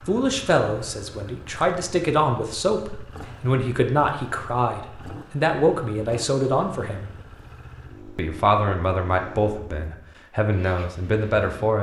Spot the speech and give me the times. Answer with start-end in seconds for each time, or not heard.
0.1-7.1, 8.2-11.7.